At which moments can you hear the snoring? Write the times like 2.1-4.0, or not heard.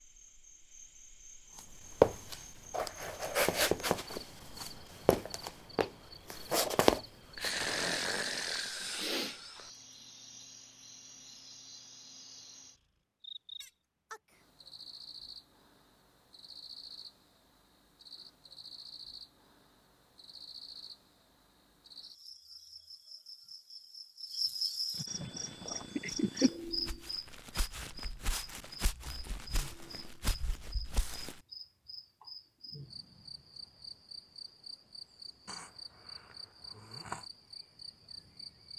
7.3-9.7, 35.5-37.2.